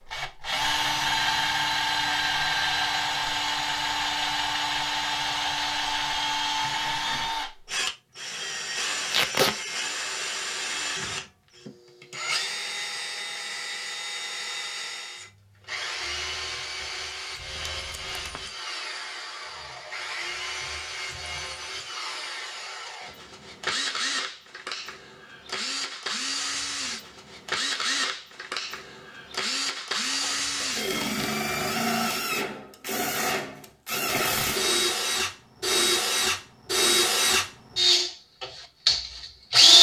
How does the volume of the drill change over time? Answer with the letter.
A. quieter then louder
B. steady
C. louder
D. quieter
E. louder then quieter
A.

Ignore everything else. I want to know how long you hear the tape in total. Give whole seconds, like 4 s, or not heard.
3 s.